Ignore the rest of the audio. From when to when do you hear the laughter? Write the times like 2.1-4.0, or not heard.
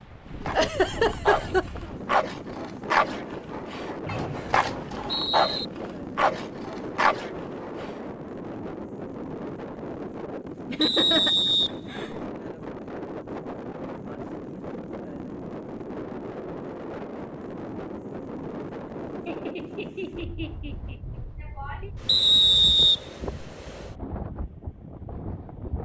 0.5-1.9, 10.7-12.2, 19.2-21.9.